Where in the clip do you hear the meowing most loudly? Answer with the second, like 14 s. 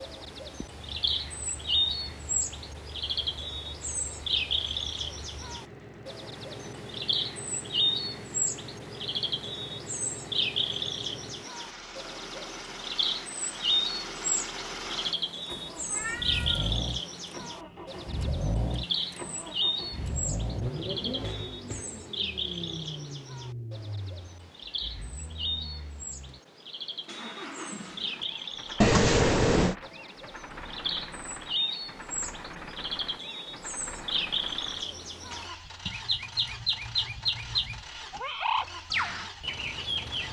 29 s.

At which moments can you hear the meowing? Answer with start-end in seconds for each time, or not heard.
15.8-16.8, 28.8-29.8.